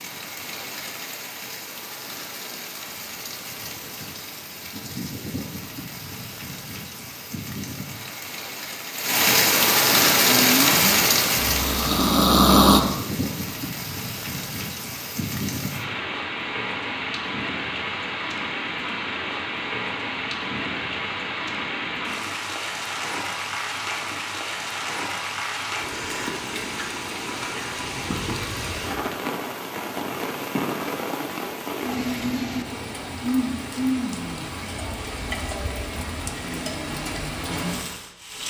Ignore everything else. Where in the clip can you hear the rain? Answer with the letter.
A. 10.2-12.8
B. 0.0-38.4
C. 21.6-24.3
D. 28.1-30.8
B.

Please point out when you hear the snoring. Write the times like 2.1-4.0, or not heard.
10.2-12.8.